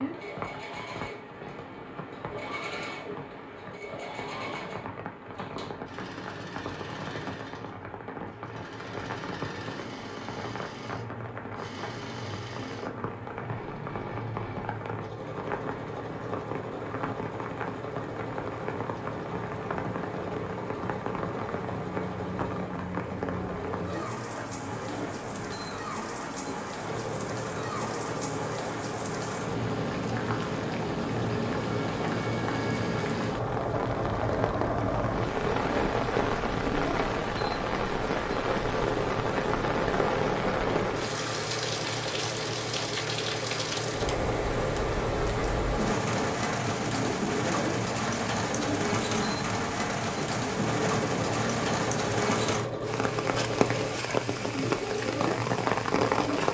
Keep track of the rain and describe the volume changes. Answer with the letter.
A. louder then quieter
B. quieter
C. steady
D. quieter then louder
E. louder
E.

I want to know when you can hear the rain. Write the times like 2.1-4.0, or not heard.
0.0-56.4.